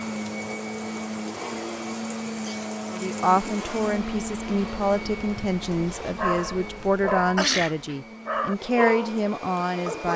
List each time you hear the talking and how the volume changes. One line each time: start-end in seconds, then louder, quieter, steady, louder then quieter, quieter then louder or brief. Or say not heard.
2.9-10.1 steady.